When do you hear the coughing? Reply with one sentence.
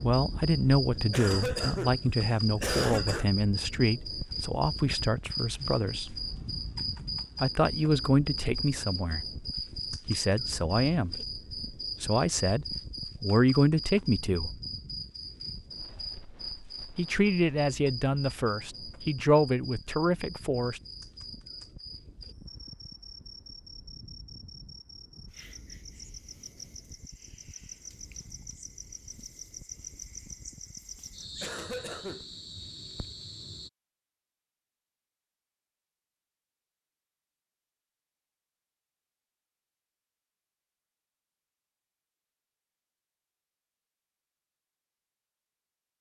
You can hear the coughing from 1.1 to 3.2 s and from 30.9 to 32.2 s.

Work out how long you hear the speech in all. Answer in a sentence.
The speech can be heard for 16 seconds in total.